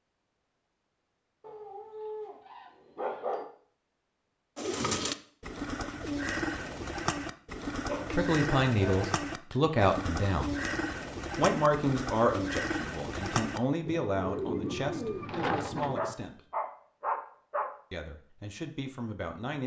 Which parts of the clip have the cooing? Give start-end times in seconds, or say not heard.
4.5-16.1.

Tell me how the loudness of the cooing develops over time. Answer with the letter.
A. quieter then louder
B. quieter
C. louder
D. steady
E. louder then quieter
D.